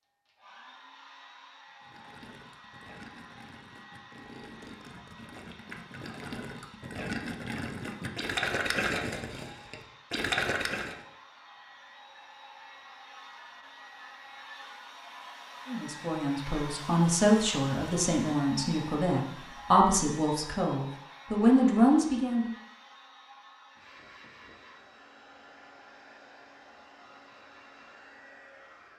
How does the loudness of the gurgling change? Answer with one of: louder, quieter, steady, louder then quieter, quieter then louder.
louder.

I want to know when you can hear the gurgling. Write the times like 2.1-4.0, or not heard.
1.8-11.0.